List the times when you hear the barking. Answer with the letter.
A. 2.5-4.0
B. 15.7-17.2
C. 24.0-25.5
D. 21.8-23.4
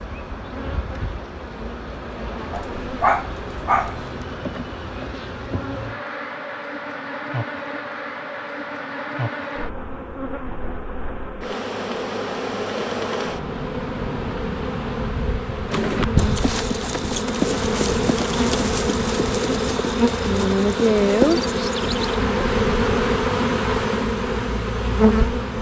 A.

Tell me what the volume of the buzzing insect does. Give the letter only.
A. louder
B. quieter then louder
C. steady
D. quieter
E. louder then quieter
A.